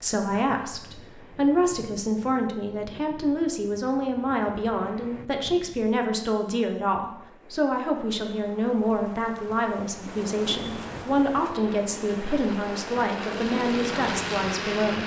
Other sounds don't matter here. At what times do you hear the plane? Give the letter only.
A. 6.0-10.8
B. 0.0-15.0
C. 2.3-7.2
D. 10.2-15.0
D.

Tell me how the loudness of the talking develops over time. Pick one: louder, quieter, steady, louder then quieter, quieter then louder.
steady.